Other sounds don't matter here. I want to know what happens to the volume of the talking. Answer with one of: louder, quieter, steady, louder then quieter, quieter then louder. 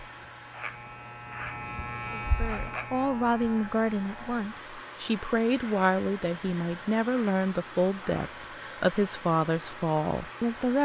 steady.